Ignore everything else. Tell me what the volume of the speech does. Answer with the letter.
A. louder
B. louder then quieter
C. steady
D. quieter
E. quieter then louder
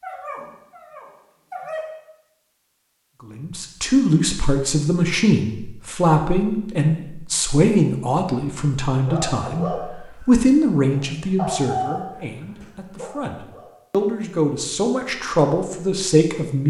E.